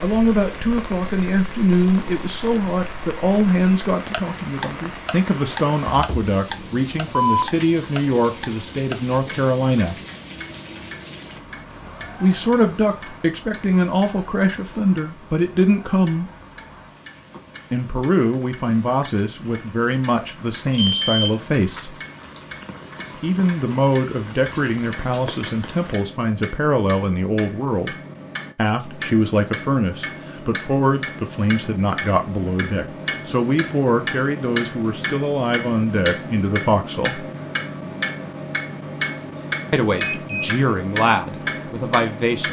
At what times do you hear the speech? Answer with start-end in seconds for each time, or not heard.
0.0-9.9, 12.2-16.2, 17.7-22.0, 23.2-27.9, 28.6-37.2, 39.7-42.4.